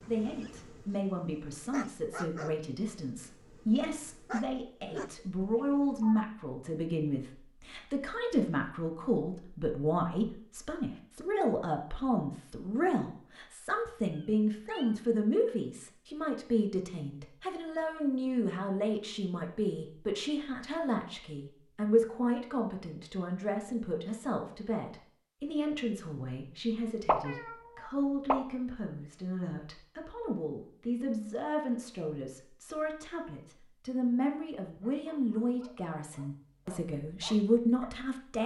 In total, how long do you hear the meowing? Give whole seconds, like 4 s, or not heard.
3 s.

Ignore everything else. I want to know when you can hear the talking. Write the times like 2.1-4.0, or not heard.
0.1-38.4.